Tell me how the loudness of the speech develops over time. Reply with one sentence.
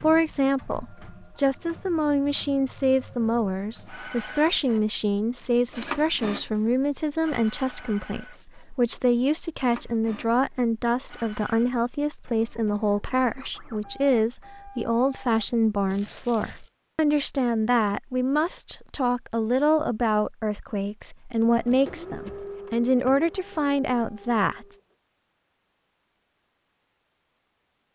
The loudness of the speech stays about the same.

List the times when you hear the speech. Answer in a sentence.
The speech can be heard from 0.0 to 24.8 s.